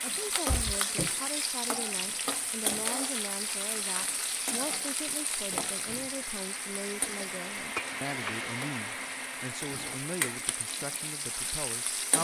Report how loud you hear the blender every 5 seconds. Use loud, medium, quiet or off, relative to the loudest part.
medium, loud, medium.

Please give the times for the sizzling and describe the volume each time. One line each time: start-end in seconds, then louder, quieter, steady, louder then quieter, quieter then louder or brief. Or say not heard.
0.0-12.1 quieter then louder.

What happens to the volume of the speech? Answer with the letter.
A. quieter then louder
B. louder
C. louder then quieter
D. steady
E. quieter
D.